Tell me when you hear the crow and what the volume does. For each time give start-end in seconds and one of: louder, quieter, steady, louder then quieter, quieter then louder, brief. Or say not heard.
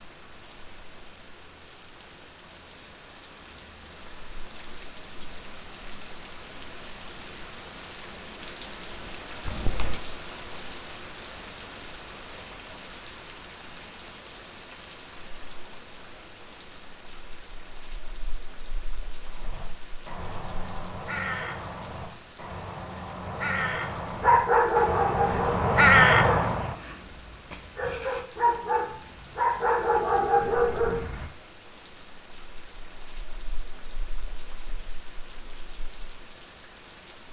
19.2-26.8 louder.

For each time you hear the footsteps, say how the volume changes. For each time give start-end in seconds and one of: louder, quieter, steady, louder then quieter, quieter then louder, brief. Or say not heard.
not heard.